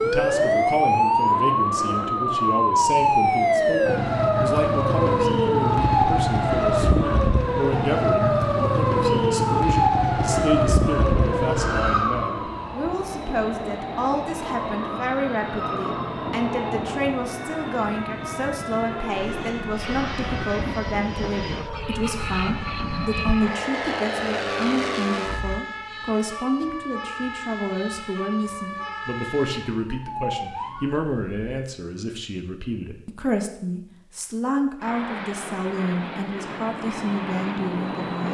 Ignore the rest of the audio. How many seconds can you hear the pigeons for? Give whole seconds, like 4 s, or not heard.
not heard.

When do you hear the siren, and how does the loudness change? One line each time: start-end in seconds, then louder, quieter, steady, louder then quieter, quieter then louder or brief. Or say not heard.
0.0-31.6 quieter.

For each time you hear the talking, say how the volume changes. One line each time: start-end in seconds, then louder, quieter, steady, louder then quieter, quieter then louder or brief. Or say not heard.
0.0-38.2 steady.